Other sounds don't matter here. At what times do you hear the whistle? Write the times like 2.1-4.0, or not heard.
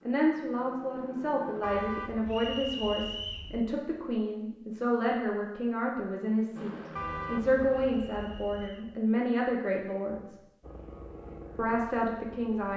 2.2-3.5, 8.0-8.9.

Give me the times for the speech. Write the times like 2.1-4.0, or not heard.
0.1-10.4, 11.6-12.7.